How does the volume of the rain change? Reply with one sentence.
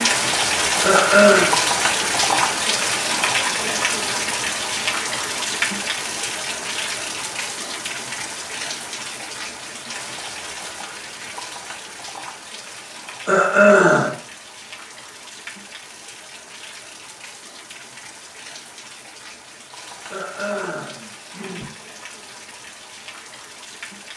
The volume of the rain goes down.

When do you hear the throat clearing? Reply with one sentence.
You can hear the throat clearing from 0.8 to 1.6 s, from 13.2 to 14.2 s and from 20.1 to 21.8 s.